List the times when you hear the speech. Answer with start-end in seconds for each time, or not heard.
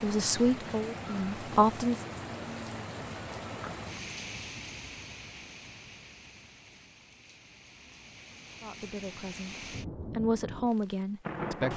0.0-2.0, 8.6-11.7.